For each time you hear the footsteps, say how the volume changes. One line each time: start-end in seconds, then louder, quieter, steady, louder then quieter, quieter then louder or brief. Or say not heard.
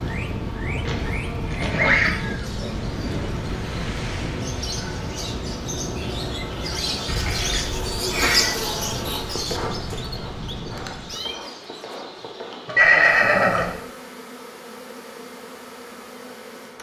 not heard.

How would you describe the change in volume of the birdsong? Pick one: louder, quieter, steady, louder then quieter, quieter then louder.
louder then quieter.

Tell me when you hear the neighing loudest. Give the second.
13 s.